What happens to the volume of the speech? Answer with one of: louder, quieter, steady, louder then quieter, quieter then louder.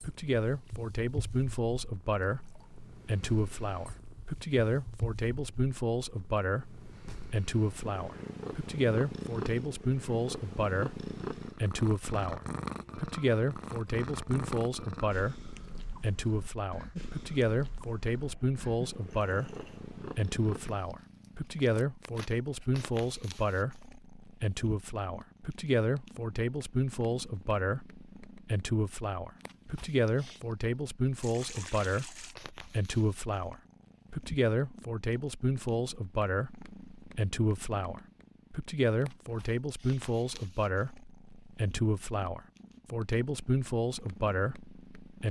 steady.